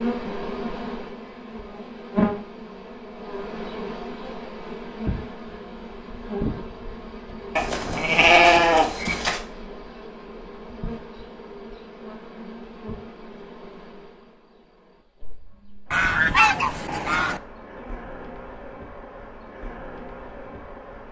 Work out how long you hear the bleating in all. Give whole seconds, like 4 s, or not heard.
2 s.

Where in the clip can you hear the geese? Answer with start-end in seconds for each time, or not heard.
15.9-17.4.